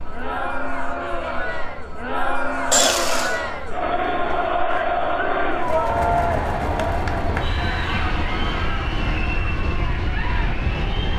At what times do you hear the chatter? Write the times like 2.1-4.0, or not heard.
0.0-11.1.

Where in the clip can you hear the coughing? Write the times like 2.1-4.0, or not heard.
2.7-3.4.